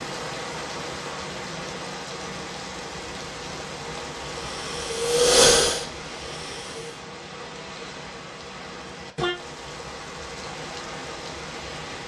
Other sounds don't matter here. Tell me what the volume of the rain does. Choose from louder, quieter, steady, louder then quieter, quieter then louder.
steady.